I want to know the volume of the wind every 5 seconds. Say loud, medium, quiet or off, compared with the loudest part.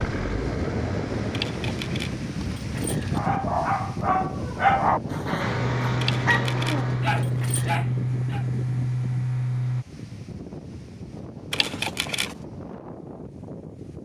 loud, medium, medium.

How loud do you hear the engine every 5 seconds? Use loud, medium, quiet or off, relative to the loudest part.
medium, loud, off.